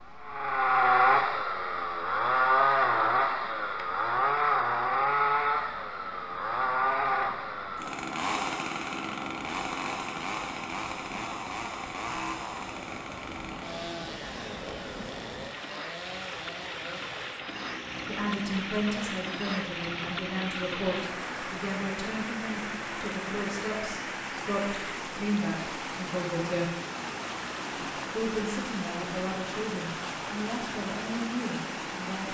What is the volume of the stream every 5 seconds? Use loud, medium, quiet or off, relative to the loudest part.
quiet, quiet, medium, loud, loud, loud, loud.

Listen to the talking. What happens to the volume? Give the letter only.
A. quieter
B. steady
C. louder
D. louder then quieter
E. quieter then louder
B.